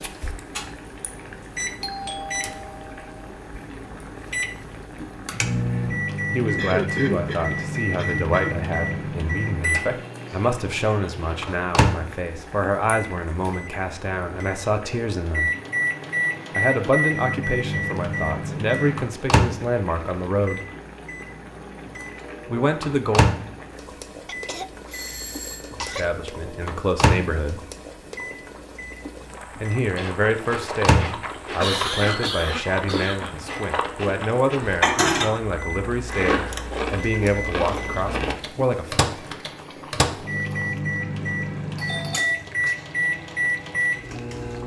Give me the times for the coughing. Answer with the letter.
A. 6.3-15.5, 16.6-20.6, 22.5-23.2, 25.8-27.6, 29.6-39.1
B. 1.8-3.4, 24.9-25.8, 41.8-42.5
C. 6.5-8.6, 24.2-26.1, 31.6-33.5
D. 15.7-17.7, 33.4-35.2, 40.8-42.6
C.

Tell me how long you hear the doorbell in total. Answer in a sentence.
You can hear the doorbell for 3 seconds altogether.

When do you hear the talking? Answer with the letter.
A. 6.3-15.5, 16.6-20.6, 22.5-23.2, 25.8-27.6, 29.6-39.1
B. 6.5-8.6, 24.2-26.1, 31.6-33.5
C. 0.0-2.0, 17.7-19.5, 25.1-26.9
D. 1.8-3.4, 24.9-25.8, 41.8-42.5
A.